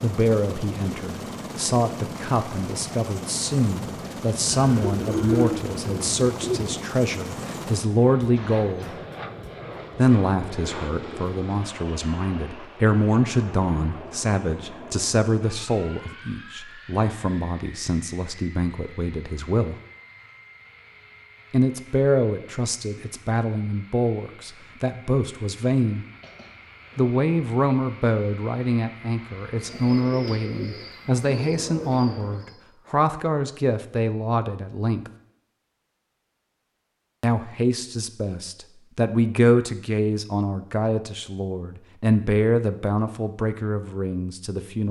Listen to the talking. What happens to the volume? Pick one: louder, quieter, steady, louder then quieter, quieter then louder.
steady.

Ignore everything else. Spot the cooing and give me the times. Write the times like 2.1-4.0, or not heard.
4.5-6.8, 29.6-32.5.